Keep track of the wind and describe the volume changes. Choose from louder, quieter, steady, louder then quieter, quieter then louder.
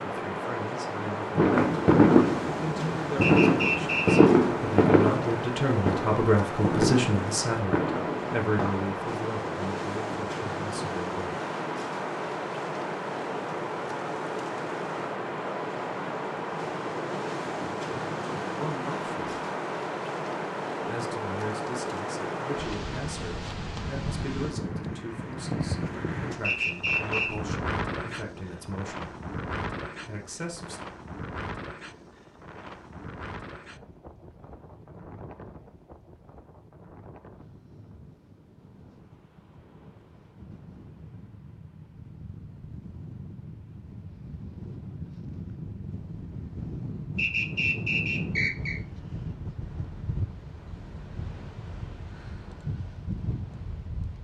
quieter then louder.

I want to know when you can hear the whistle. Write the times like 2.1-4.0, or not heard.
3.2-4.2, 26.4-27.4, 47.1-48.8.